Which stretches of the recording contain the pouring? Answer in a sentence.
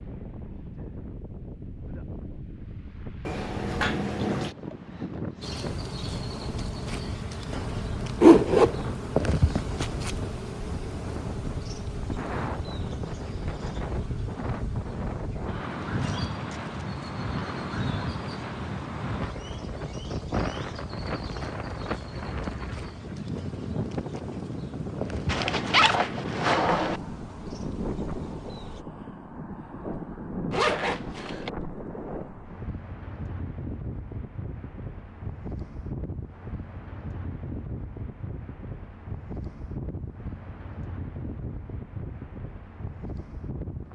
The pouring can be heard from 3.2 to 4.5 s.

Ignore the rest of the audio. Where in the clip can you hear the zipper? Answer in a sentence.
The zipper can be heard from 8.2 to 8.8 s, from 25.3 to 27.0 s and from 30.5 to 31.5 s.